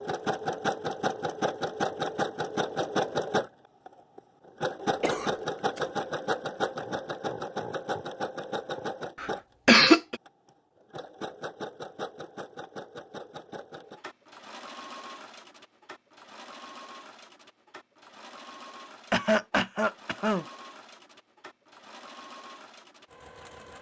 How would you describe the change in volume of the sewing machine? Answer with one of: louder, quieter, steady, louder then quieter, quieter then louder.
quieter.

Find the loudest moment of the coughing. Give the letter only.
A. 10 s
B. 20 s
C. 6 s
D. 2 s
A.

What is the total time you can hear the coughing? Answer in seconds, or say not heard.
3 s.